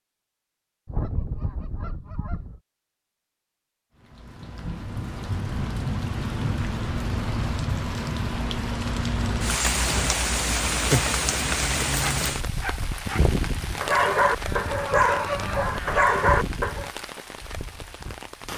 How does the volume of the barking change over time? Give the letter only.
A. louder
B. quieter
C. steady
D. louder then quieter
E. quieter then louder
A.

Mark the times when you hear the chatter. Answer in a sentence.
You can't hear the chatter here.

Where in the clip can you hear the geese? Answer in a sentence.
You can hear the geese from 0.8 to 2.6 s and from 13.8 to 16.2 s.